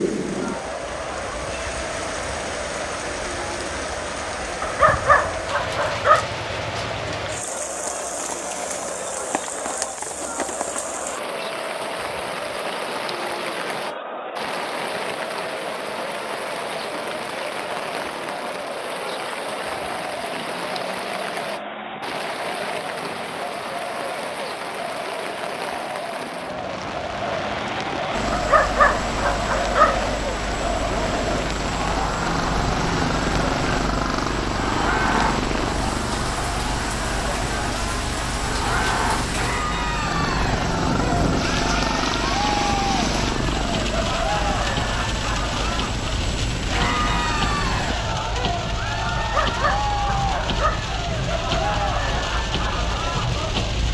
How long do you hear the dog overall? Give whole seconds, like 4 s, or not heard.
5 s.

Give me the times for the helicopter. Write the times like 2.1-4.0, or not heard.
28.1-48.0.